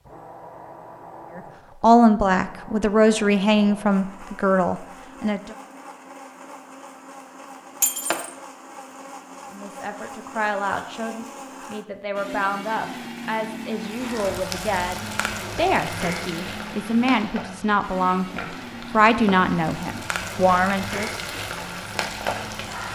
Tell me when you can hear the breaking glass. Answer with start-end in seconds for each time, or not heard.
7.8-8.3.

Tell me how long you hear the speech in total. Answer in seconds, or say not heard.
16 s.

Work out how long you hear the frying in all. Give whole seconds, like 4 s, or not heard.
9 s.